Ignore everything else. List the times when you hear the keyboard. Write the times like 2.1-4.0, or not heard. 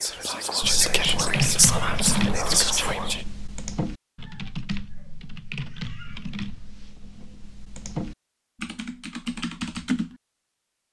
0.6-10.2.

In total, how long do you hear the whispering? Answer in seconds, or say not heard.
3 s.